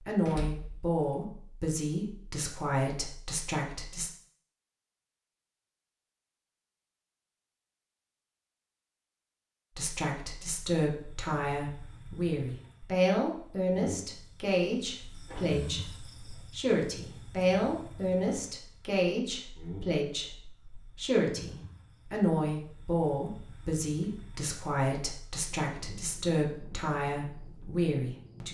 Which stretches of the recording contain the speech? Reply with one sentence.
You can hear the speech from 0.1 to 4.1 s and from 9.8 to 28.4 s.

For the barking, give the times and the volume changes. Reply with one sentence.
The barking can't be heard in this clip.